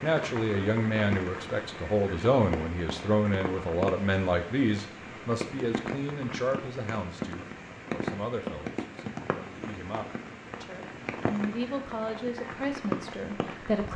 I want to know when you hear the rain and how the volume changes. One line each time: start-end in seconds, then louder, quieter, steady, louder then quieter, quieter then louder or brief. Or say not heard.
0.0-13.9 steady.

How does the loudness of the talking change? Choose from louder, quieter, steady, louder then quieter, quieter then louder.
quieter then louder.